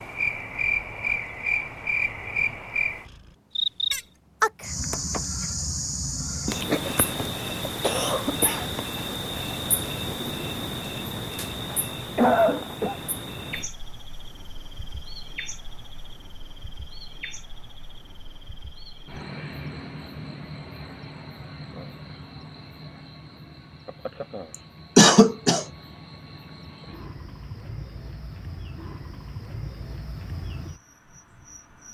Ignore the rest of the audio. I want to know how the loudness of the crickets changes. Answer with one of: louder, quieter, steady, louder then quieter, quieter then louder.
quieter.